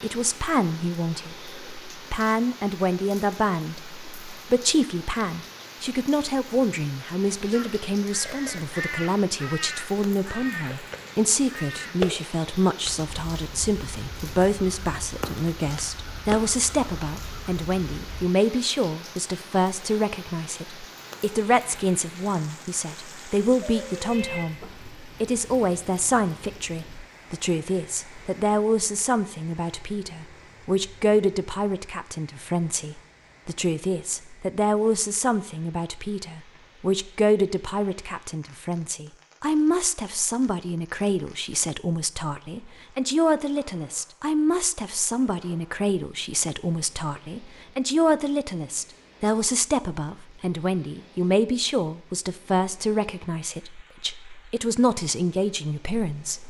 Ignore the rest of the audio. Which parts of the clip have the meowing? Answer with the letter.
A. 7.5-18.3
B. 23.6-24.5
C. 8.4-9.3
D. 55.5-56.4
B.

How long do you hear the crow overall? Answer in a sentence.
You can hear the crow for 11 seconds altogether.